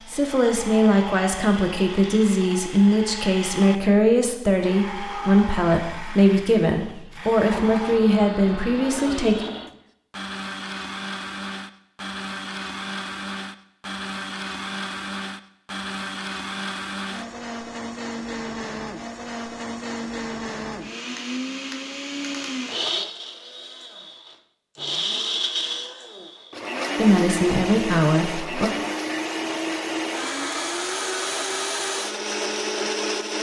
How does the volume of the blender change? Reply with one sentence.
The loudness of the blender goes up.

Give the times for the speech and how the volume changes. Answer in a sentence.
The speech can be heard from 0.1 to 9.4 s, at a steady volume; and briefly from 26.9 to 28.7 s.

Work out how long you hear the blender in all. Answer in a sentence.
The blender can be heard for 33 seconds in total.